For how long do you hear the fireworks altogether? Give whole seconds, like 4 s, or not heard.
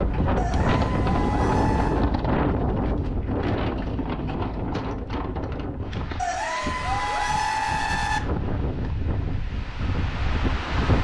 not heard.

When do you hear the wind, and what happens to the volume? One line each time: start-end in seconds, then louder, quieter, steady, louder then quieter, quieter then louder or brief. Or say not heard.
0.0-10.9 quieter.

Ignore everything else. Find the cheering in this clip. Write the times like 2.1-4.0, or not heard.
0.3-2.0, 6.2-8.2.